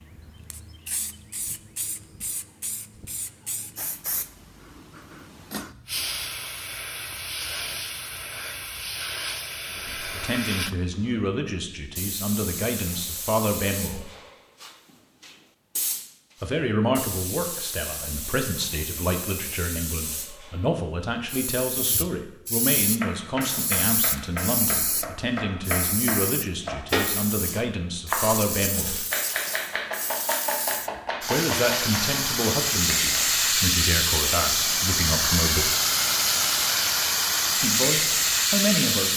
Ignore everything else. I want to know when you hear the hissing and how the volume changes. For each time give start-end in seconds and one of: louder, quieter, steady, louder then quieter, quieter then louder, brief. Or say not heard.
0.0-39.1 louder.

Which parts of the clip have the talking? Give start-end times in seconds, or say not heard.
9.8-14.1, 16.4-29.1, 31.2-35.8, 37.5-39.1.